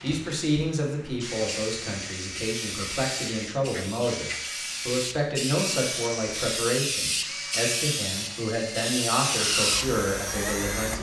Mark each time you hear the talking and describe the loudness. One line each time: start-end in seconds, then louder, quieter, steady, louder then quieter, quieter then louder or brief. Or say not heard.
0.0-10.9 steady.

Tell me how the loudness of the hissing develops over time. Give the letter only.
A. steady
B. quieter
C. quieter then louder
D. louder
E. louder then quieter
D.